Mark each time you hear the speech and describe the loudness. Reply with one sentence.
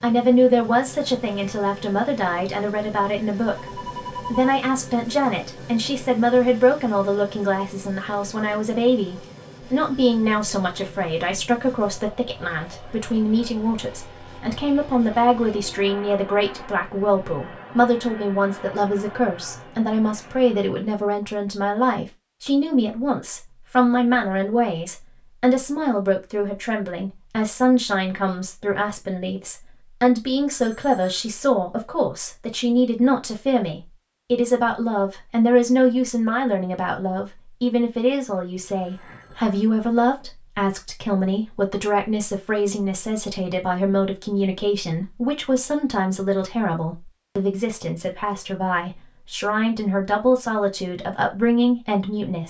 The speech can be heard from 0.0 to 52.4 s, at a steady volume.